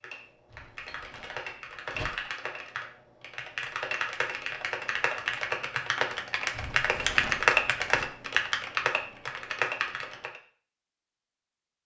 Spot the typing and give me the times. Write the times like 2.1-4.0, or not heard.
0.0-10.4.